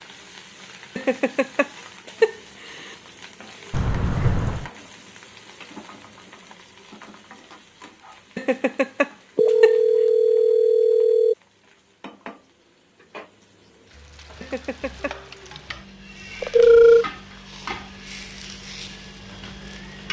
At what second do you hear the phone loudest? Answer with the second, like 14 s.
17 s.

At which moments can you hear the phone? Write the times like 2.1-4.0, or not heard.
3.7-4.7, 9.3-11.3, 16.4-17.1.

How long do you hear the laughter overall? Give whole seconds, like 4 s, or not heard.
4 s.